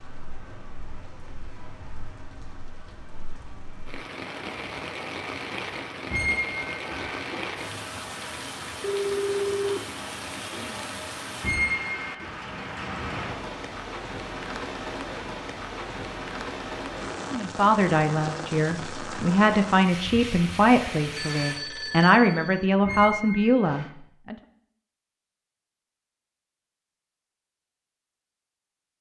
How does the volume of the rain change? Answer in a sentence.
The loudness of the rain goes up.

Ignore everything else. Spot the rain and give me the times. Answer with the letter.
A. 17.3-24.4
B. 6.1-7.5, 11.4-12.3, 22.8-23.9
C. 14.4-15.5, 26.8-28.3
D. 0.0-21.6
D.